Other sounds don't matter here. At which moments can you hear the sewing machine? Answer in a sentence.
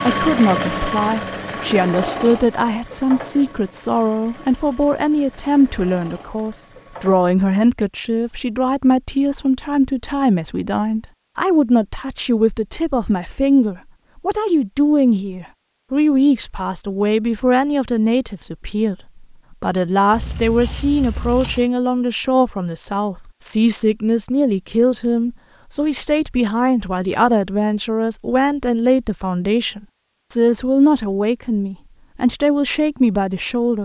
You can hear the sewing machine from 0.0 to 7.2 s.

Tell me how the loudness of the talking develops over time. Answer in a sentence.
The volume of the talking stays about the same.